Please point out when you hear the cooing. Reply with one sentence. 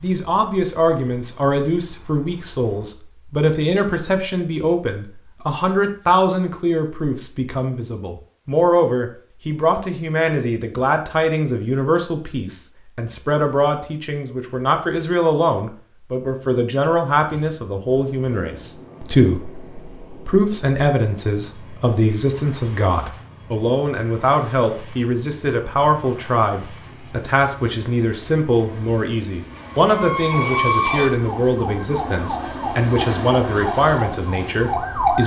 You can't hear the cooing here.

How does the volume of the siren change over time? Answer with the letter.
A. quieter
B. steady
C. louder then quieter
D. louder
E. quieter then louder
E.